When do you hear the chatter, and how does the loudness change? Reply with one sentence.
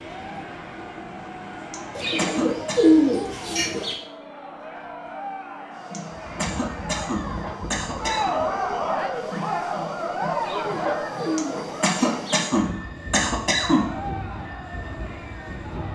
You can hear the chatter from 0.0 to 15.9 s, getting louder then quieter.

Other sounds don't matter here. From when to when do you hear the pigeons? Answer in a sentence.
The pigeons can be heard from 1.9 to 4.0 s and from 10.3 to 12.4 s.